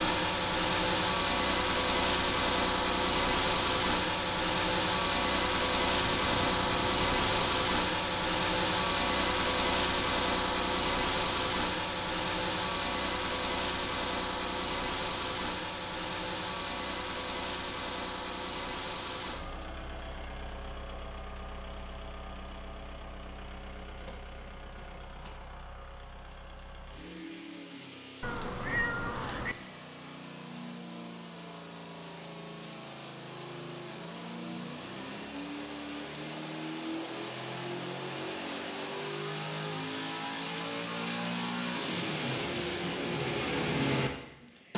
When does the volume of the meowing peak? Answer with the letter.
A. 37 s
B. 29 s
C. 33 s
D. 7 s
B.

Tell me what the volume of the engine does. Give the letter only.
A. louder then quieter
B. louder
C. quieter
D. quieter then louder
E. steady
D.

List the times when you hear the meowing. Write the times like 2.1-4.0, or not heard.
6.0-7.5, 28.2-29.6.